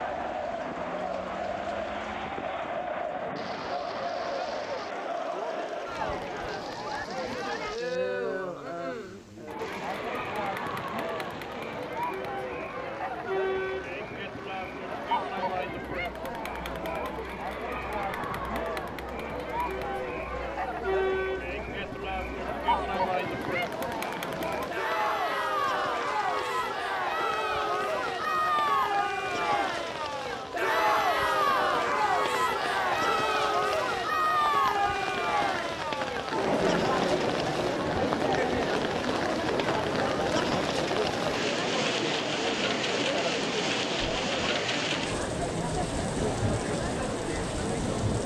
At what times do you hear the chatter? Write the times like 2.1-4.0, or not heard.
0.0-48.2.